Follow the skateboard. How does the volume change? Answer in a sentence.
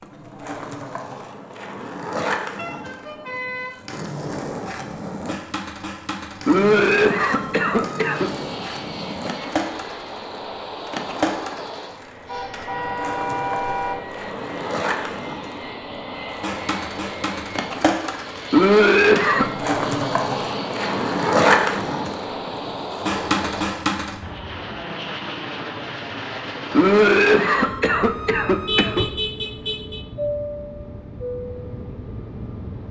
The loudness of the skateboard goes up.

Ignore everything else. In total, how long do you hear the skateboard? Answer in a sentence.
The skateboard can be heard for 24 seconds in total.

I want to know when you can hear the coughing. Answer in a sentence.
The coughing can be heard from 6.5 to 8.3 s, from 18.5 to 19.5 s and from 26.7 to 29.1 s.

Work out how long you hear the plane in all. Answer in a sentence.
You can hear the plane for 25 seconds altogether.